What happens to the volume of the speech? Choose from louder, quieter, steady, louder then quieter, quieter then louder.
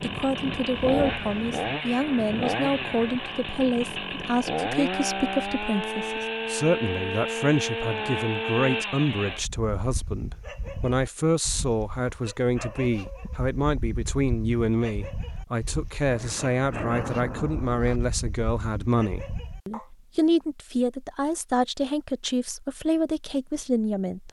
steady.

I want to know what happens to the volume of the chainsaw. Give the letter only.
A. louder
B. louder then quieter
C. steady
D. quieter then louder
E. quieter
C.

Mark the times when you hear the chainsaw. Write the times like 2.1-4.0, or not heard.
0.0-9.4.